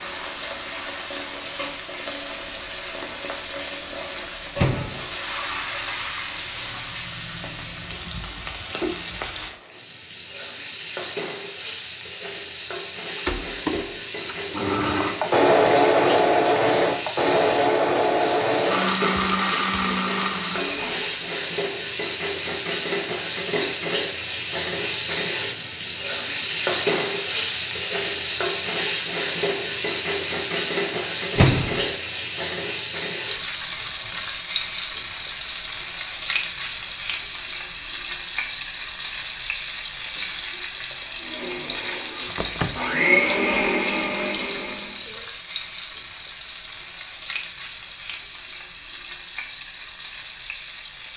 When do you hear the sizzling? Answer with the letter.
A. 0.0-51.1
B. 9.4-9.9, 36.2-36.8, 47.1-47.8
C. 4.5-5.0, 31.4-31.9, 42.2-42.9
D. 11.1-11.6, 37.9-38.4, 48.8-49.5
A.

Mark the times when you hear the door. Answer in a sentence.
The door can be heard from 4.5 to 5.0 s, from 31.4 to 31.9 s and from 42.2 to 42.9 s.